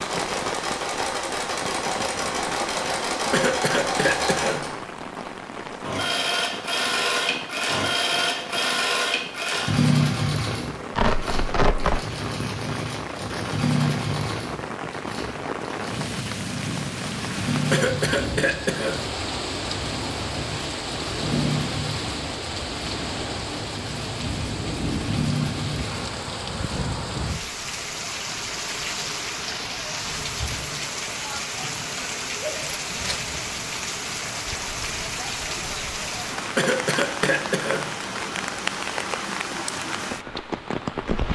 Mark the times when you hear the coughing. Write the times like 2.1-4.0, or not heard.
3.3-4.7, 17.7-19.0, 36.5-37.9.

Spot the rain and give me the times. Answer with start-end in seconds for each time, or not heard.
0.0-41.3.